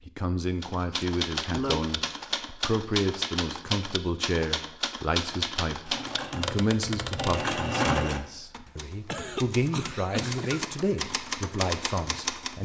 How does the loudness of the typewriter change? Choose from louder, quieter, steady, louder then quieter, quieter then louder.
quieter then louder.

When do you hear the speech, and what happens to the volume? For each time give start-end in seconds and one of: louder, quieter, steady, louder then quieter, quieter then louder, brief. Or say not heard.
0.1-12.5 steady.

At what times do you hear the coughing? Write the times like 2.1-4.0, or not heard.
1.0-1.9, 8.7-10.7.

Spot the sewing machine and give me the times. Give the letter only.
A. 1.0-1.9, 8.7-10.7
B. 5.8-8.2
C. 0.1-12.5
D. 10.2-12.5
B.